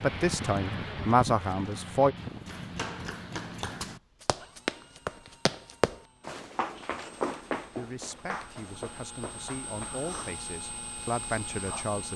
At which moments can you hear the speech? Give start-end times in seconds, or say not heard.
0.0-2.1, 7.8-12.1.